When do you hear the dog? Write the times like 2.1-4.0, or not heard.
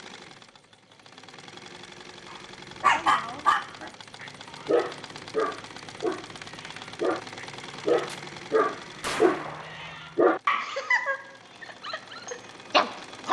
2.8-13.2.